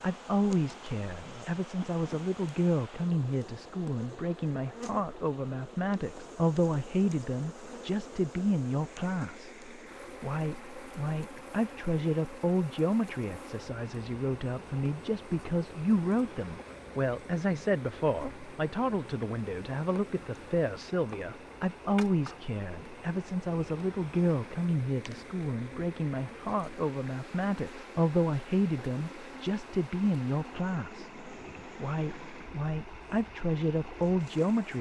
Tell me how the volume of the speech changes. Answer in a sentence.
The volume of the speech stays about the same.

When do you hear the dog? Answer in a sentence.
The dog can't be heard in this clip.